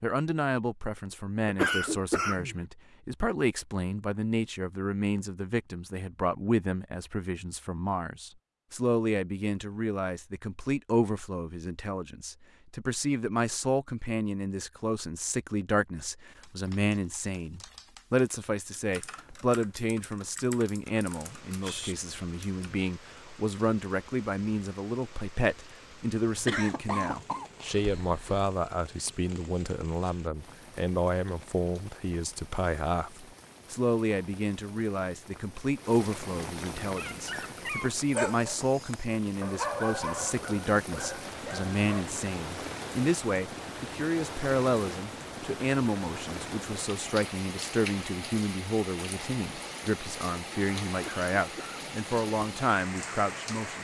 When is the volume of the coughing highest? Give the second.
2 s.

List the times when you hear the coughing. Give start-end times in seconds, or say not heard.
1.4-2.6, 26.4-28.4, 50.9-51.8.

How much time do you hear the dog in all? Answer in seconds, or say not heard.
5 s.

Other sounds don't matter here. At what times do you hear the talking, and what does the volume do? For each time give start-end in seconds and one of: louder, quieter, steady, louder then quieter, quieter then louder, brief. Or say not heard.
0.0-53.7 steady.